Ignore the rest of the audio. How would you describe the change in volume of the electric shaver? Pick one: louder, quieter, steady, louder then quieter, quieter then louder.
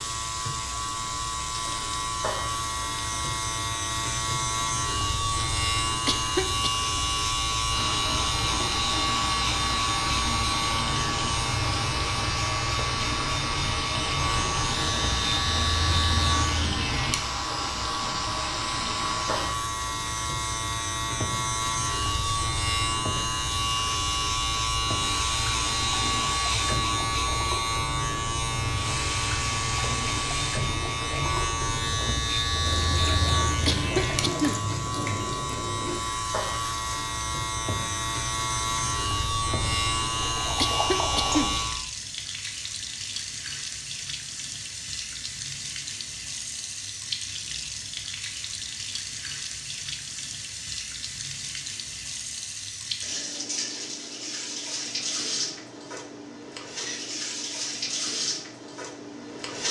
steady.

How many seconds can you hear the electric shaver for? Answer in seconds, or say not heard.
42 s.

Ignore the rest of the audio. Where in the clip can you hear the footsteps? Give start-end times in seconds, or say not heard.
not heard.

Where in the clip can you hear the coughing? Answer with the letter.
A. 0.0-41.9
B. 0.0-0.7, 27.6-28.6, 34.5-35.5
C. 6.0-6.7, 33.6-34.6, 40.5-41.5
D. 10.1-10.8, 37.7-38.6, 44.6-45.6
C.